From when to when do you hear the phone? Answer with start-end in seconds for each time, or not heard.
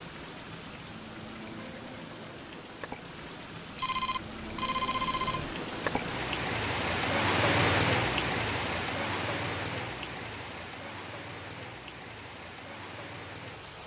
3.8-5.5.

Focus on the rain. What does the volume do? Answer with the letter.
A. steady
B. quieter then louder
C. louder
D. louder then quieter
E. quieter
D.